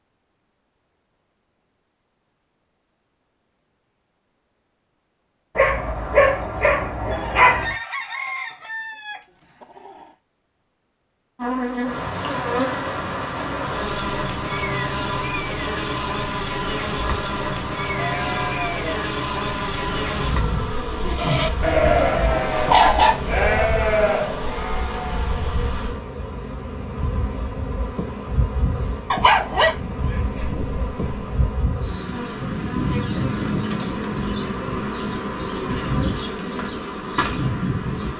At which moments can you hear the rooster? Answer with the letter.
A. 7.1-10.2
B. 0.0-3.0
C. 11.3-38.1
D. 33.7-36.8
A.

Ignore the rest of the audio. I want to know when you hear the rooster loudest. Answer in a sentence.
The volume of the rooster peaks at 8 seconds.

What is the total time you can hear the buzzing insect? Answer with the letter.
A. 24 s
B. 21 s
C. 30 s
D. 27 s
D.